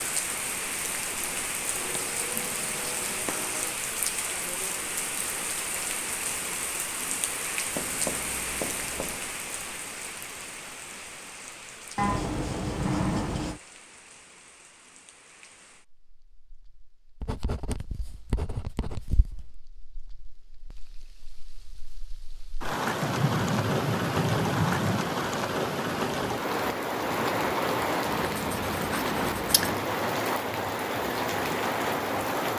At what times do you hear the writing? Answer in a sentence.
You can hear the writing from 1.8 to 3.8 s, from 7.7 to 9.2 s, from 11.9 to 13.6 s, from 17.2 to 19.5 s, from 23.0 to 25.1 s and from 28.1 to 29.8 s.